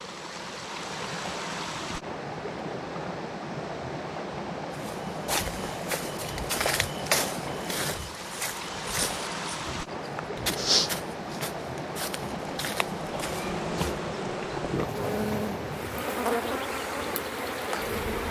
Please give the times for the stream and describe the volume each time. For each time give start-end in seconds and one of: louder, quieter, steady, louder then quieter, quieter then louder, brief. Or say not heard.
0.0-18.2 steady.